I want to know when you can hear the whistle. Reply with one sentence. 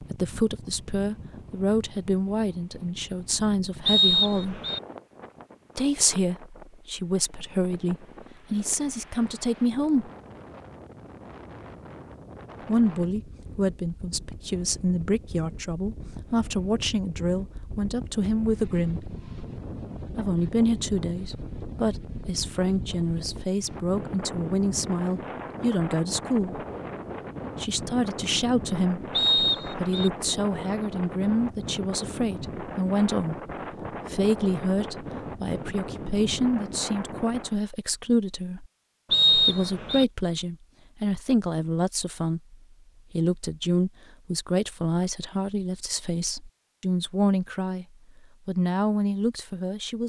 You can hear the whistle from 3.9 to 4.8 s, from 29.1 to 30.1 s and from 39.1 to 40.0 s.